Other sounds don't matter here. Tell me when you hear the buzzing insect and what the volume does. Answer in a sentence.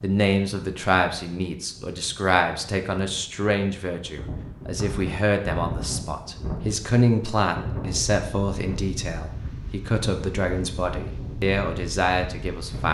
You can't hear the buzzing insect here.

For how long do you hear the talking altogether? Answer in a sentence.
You can hear the talking for 13 seconds altogether.